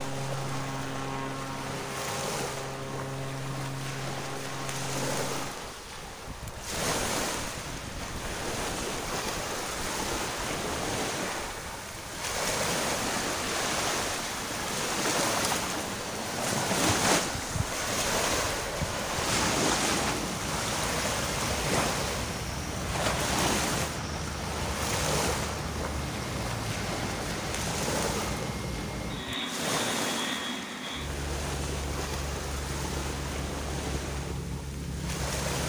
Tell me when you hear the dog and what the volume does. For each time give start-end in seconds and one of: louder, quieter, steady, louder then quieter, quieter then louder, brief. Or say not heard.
not heard.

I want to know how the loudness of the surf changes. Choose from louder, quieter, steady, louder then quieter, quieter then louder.
louder then quieter.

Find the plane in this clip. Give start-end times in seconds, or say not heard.
0.0-35.6.